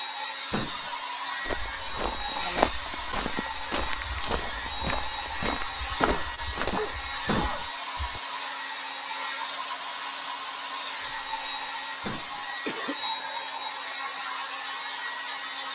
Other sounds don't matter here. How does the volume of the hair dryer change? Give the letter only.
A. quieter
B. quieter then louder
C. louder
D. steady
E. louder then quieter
D.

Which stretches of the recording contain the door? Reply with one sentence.
You can hear the door from 0.5 to 0.9 s, from 7.2 to 7.7 s and from 12.0 to 12.4 s.